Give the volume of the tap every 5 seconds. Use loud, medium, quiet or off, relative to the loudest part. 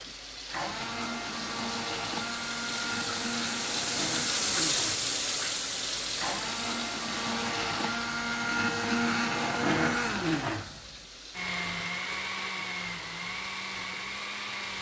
loud, loud, quiet.